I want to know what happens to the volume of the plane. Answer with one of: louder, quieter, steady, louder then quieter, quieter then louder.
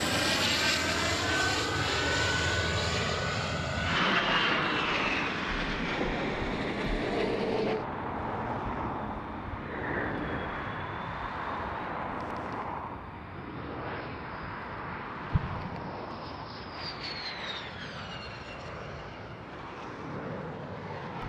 quieter.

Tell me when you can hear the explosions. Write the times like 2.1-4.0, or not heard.
15.3-15.9.